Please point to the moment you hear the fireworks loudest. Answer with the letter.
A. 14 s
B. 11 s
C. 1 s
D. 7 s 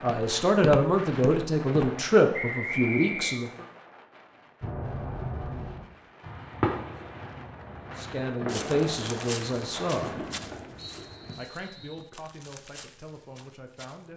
D.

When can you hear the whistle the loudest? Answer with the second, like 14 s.
3 s.